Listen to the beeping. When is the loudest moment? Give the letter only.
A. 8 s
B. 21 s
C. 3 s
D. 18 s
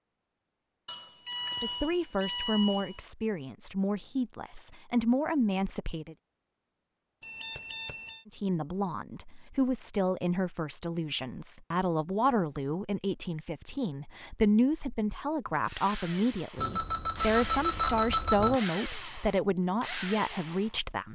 D.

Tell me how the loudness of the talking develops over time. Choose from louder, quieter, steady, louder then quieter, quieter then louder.
steady.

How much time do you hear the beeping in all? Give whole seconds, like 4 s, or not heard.
5 s.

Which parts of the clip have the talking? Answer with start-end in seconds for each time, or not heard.
1.6-6.2, 8.2-21.0.